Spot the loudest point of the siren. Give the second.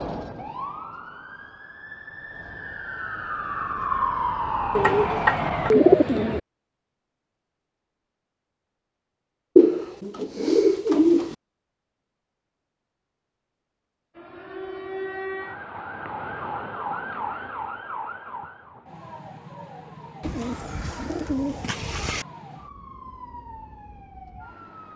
4 s.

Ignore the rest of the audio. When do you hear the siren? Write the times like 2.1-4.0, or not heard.
0.0-5.8, 14.2-24.9.